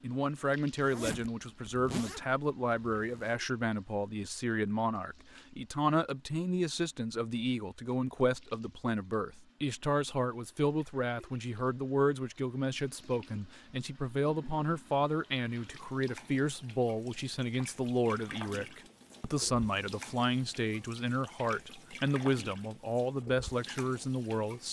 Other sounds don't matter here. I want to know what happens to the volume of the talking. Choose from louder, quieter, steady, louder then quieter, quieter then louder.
steady.